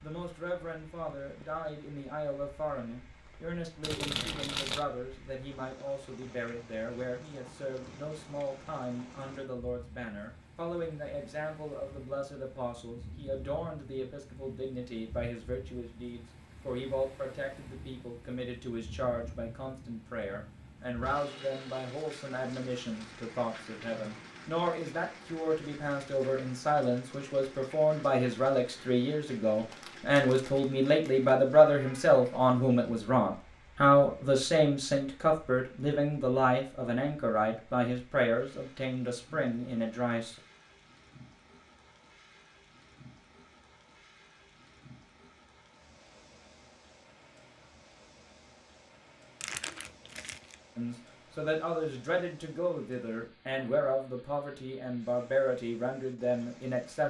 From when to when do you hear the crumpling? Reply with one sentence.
The crumpling can be heard from 3.8 to 4.8 s, from 29.7 to 31.3 s and from 49.4 to 50.5 s.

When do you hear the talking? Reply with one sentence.
The talking can be heard from 0.0 to 40.4 s and from 50.8 to 57.0 s.